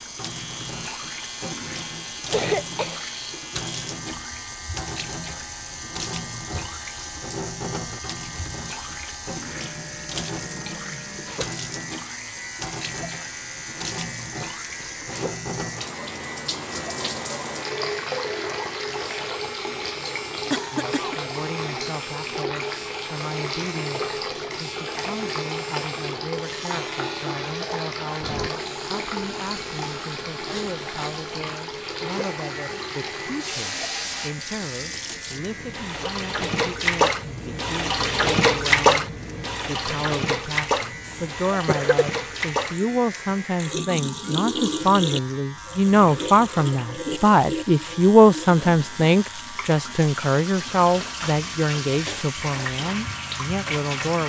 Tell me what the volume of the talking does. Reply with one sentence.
The volume of the talking goes up.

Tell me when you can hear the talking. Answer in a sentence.
The talking can be heard from 20.7 to 54.2 s.